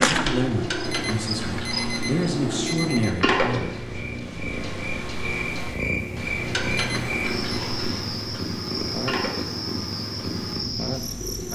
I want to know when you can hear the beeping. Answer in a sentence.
You can hear the beeping from 0.8 to 3.2 s and from 6.7 to 7.7 s.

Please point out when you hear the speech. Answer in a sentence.
The speech can be heard from 0.1 to 3.6 s.